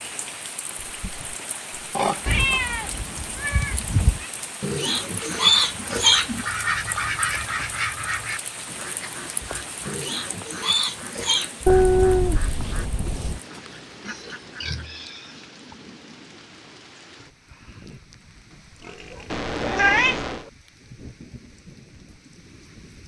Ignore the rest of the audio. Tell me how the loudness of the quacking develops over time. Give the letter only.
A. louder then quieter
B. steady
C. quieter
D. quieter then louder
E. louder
C.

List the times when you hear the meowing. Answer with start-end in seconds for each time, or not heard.
2.2-4.2, 11.7-13.4, 19.3-20.4.